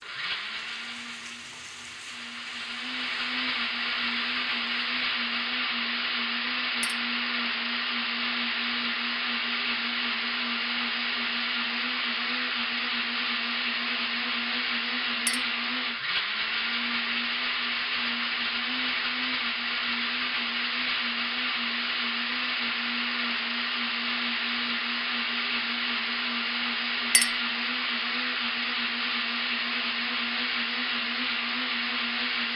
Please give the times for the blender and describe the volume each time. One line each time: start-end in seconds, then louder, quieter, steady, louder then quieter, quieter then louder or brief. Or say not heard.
0.0-32.5 steady.